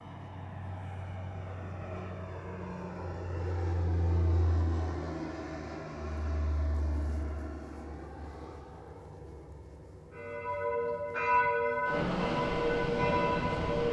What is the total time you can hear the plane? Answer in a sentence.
You can hear the plane for 14 seconds altogether.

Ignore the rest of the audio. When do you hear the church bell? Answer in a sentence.
The church bell can be heard from 10.1 to 13.8 s.